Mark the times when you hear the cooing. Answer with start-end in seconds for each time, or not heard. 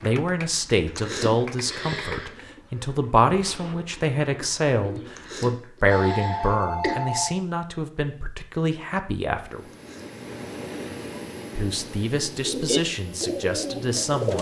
0.0-5.5, 12.3-14.3.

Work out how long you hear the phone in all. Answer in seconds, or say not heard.
2 s.